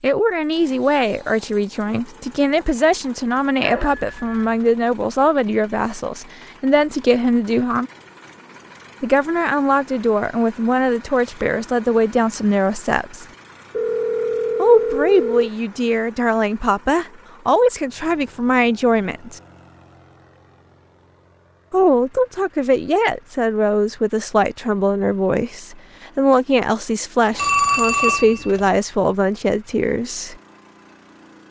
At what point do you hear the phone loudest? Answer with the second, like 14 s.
28 s.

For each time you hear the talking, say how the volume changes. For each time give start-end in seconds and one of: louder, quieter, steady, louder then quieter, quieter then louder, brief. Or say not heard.
0.0-7.9 steady
9.0-13.2 steady
14.6-19.4 steady
21.7-30.4 steady.